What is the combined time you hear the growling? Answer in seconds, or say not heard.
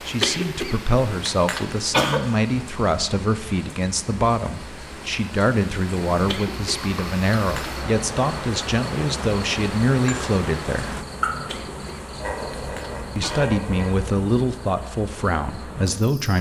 2 s.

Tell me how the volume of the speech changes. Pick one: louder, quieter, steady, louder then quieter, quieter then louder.
steady.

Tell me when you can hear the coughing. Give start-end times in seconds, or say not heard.
0.2-2.2, 6.2-7.8, 11.4-13.5.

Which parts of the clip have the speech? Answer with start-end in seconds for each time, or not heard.
0.0-11.0, 13.2-16.3.